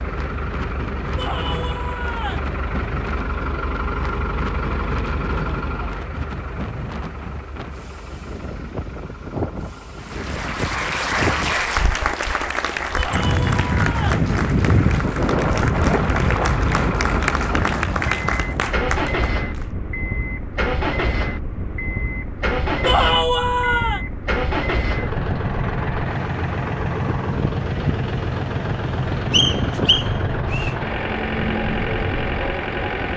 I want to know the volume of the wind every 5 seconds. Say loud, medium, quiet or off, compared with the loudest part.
medium, medium, loud, loud, medium, medium, medium.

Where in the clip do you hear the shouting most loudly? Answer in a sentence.
The volume of the shouting peaks at 23 seconds.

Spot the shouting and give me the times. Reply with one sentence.
You can hear the shouting from 1.1 to 2.5 s, from 12.9 to 14.2 s and from 22.9 to 24.0 s.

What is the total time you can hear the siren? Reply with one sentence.
You can't hear the siren here.